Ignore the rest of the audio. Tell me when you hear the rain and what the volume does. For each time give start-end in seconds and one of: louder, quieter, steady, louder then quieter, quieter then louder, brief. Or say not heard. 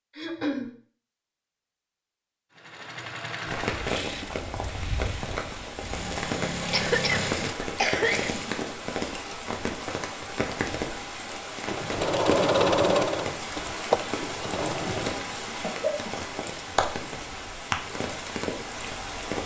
3.5-19.4 steady.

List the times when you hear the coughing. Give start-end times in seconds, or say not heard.
0.1-0.7, 6.7-8.3, 14.8-16.1.